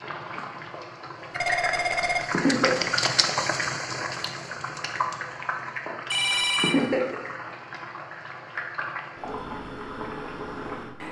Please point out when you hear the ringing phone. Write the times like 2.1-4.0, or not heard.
1.4-2.9, 6.1-6.8.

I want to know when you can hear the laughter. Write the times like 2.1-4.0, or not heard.
2.3-2.9, 6.5-7.2.